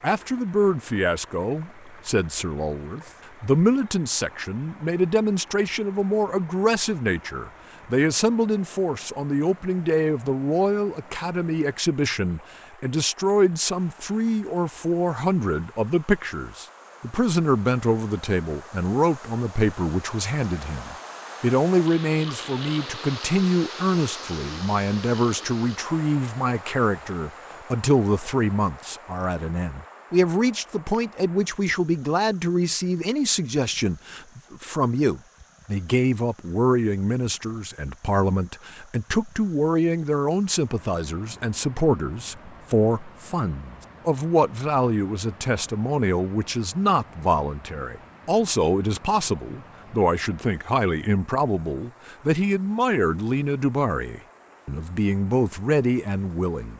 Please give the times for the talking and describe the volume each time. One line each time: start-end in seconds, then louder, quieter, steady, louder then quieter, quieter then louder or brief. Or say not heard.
0.0-56.7 steady.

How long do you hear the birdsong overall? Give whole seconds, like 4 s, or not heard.
not heard.